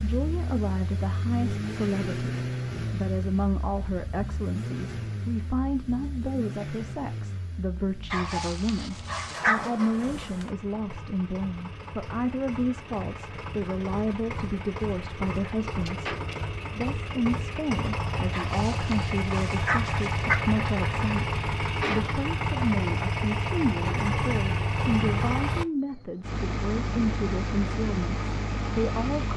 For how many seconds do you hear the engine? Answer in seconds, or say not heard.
29 s.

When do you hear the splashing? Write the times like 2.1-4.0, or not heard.
not heard.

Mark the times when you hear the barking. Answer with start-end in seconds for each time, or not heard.
8.1-9.7, 18.3-20.4.